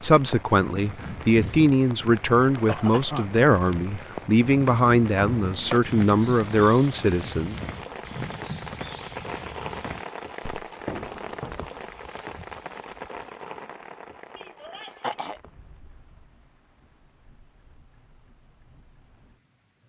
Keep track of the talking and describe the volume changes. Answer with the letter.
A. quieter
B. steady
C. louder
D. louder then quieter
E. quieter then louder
B.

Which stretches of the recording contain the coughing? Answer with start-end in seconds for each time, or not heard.
2.6-3.3, 14.3-15.4.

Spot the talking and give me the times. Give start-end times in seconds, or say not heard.
0.0-7.6.